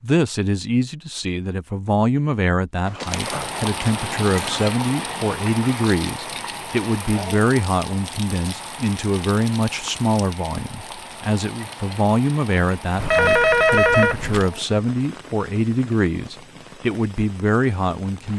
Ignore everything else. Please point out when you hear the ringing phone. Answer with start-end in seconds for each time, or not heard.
2.9-4.7, 12.9-14.4.